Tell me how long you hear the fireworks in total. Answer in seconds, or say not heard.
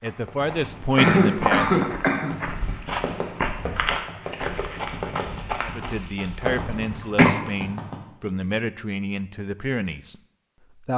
8 s.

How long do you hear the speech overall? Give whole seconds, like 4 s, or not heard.
7 s.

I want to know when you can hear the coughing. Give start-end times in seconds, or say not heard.
0.9-2.4, 6.5-7.3.